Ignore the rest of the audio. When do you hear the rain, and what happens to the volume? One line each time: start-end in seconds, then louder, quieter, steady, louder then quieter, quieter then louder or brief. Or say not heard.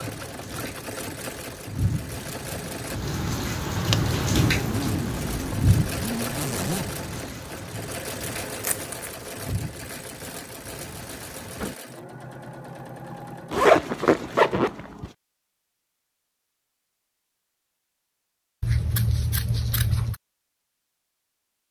0.0-11.8 louder then quieter.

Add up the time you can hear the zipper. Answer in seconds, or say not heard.
4 s.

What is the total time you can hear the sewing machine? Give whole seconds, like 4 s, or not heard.
13 s.